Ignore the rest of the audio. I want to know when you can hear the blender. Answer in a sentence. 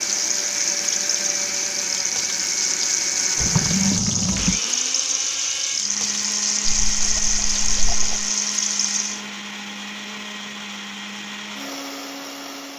The blender can be heard from 0.0 to 12.7 s.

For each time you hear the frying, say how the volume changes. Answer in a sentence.
The frying can be heard from 0.0 to 9.2 s, at a steady volume.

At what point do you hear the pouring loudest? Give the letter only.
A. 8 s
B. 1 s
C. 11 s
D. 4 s
D.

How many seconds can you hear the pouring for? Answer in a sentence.
The pouring can be heard for 3 seconds in total.